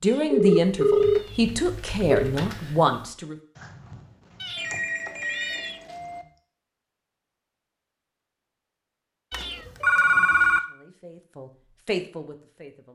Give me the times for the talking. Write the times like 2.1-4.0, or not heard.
0.0-3.4, 10.4-12.9.